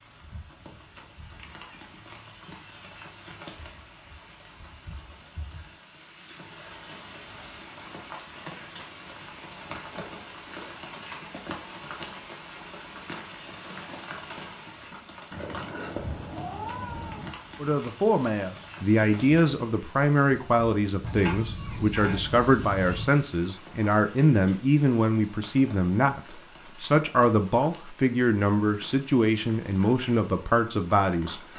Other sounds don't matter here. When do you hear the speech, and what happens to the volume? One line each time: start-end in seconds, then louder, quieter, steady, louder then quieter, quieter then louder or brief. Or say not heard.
17.6-31.4 steady.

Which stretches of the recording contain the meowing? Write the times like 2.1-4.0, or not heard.
0.9-3.0, 15.3-17.3, 21.0-23.1.